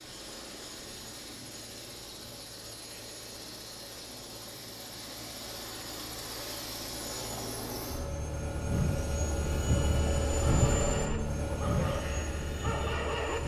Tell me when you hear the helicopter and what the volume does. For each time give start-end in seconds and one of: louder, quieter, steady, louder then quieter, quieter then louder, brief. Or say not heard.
0.0-13.4 louder.